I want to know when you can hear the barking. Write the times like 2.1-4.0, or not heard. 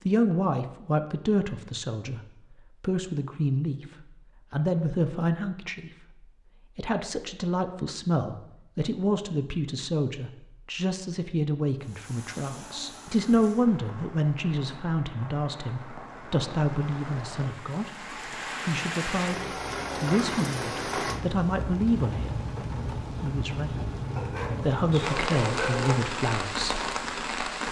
24.1-25.9.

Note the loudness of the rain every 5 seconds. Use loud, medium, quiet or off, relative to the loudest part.
off, off, quiet, medium, loud, loud.